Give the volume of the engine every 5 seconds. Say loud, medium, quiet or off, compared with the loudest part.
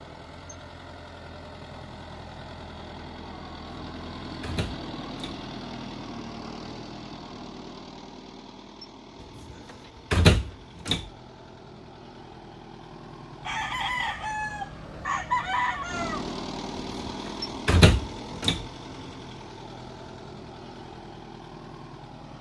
loud, loud, medium, loud, medium.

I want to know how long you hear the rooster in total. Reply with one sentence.
You can hear the rooster for 3 seconds altogether.